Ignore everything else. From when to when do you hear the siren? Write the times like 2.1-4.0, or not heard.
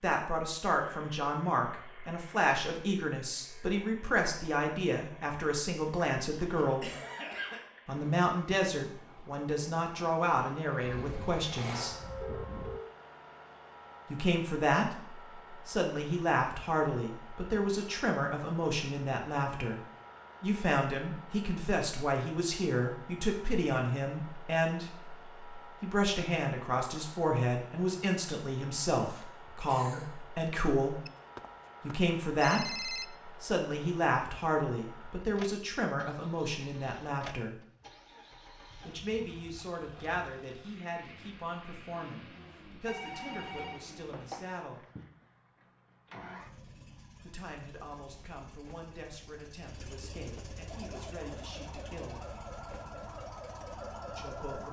10.8-12.8, 50.6-54.6.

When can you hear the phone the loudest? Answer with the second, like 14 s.
33 s.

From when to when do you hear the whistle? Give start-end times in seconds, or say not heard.
not heard.